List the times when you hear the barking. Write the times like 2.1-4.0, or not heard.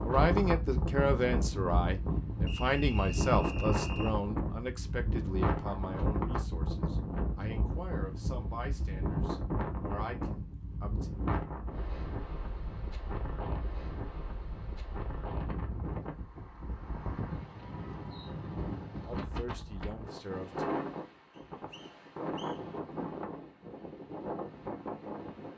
not heard.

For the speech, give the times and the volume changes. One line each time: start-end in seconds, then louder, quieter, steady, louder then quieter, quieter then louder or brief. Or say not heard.
0.0-11.1 quieter
19.1-20.6 brief.